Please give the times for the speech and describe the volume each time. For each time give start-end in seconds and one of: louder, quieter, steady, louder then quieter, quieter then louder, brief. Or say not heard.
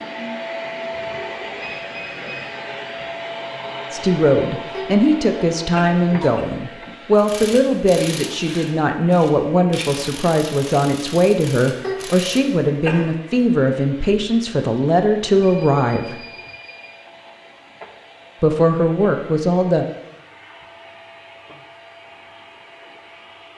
3.9-16.2 steady
18.4-19.9 brief.